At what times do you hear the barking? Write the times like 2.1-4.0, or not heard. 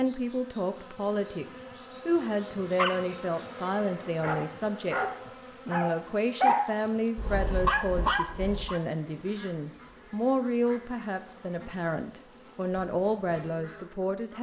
2.8-8.8.